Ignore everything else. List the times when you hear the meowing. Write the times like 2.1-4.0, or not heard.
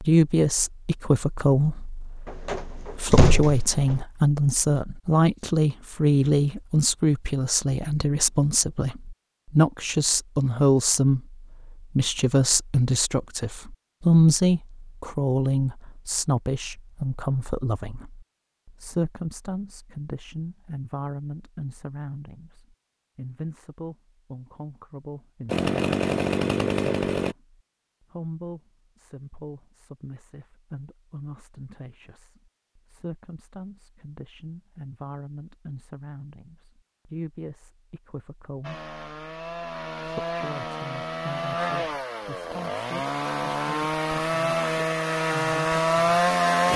not heard.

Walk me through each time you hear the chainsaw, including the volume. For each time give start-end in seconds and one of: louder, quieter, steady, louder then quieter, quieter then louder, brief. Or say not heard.
25.4-27.4 brief
38.6-46.7 louder.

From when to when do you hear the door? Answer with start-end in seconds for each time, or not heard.
2.2-4.0.